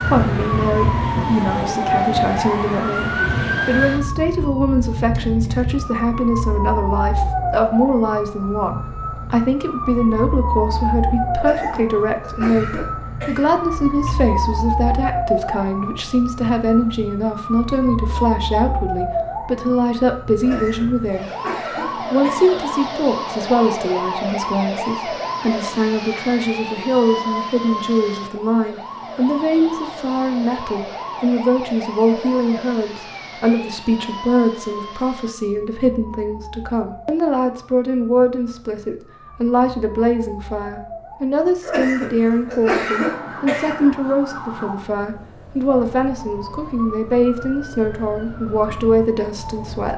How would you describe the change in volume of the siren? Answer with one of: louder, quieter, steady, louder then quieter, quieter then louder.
quieter.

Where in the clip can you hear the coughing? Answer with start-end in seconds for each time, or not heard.
11.3-14.2, 20.4-22.6, 41.6-44.0.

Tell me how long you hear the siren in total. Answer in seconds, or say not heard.
50 s.